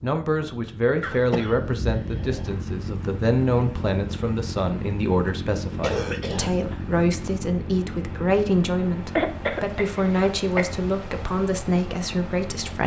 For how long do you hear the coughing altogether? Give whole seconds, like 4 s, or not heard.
4 s.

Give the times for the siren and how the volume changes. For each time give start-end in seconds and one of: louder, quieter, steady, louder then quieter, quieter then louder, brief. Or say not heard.
not heard.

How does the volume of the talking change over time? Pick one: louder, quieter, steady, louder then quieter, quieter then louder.
steady.